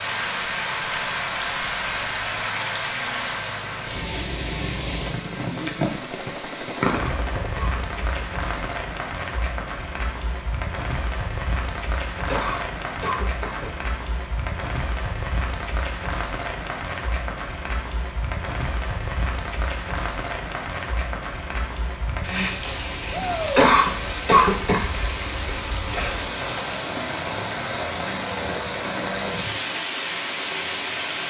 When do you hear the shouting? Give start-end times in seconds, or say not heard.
23.1-23.6.